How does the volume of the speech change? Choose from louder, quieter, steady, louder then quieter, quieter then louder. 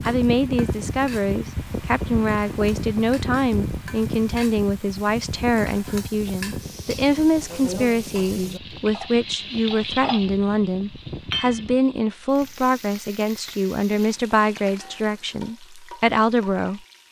steady.